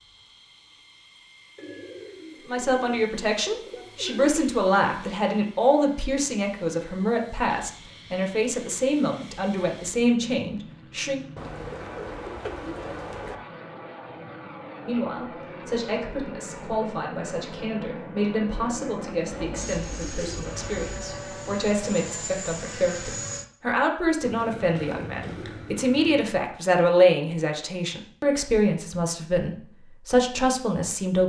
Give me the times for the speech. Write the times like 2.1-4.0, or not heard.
2.4-11.2, 14.8-31.2.